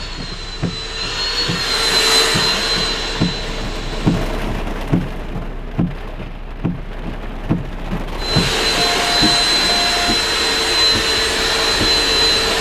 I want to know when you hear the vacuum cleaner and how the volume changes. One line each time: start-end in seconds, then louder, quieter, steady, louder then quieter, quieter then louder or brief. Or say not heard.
0.0-4.4 louder then quieter
8.2-12.5 steady.